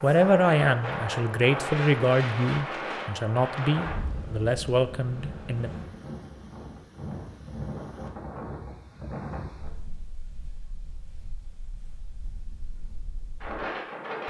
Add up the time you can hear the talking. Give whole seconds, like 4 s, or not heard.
6 s.